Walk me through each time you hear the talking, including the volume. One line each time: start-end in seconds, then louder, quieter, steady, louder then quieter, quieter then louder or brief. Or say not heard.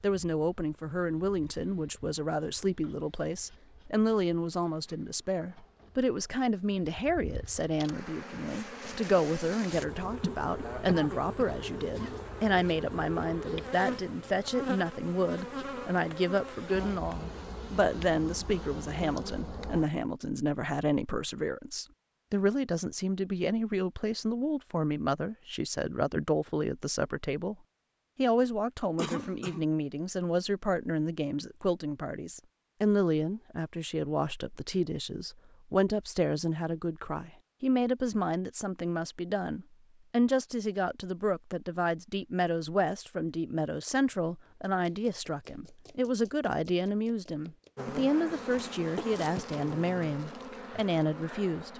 0.0-27.6 steady
28.1-51.7 steady.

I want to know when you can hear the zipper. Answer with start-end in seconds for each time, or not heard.
not heard.